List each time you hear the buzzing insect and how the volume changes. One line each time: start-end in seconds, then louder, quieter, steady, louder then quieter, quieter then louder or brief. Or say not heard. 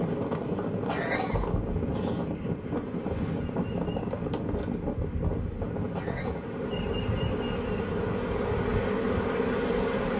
0.0-10.1 louder.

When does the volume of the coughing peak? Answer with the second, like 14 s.
1 s.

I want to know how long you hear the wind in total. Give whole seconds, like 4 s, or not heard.
10 s.